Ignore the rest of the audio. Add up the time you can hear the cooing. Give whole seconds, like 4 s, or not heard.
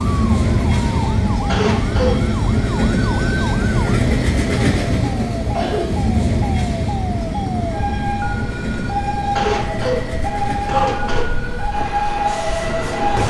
not heard.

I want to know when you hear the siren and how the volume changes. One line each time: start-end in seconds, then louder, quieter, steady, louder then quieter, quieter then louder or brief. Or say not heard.
0.0-13.2 louder.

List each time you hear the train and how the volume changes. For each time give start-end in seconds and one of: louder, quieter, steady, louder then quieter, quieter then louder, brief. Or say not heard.
0.0-13.2 quieter.